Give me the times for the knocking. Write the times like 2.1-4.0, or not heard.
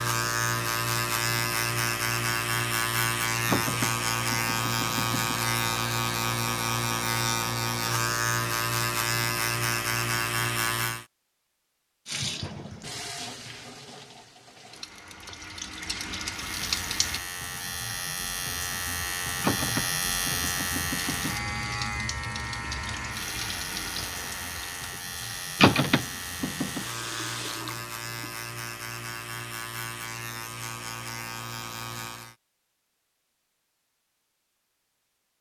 3.5-5.3, 19.4-21.4, 25.6-26.8.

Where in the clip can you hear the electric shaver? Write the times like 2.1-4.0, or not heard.
0.0-11.1, 16.3-32.4.